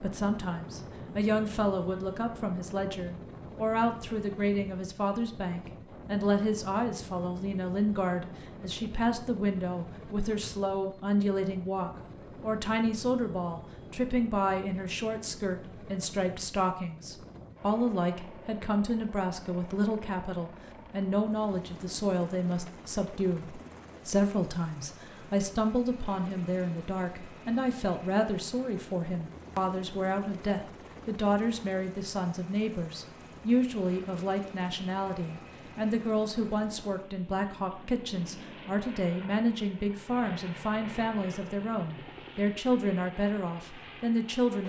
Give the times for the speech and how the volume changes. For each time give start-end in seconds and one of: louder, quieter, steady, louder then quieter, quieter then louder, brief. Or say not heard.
0.0-44.6 steady.